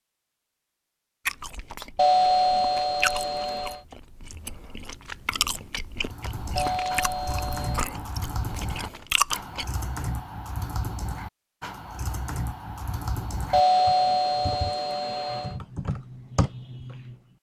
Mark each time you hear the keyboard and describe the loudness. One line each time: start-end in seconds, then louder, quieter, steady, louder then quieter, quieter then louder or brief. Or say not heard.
6.0-17.2 steady.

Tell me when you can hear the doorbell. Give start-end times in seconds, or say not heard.
1.9-3.8, 6.5-7.8, 13.5-15.6.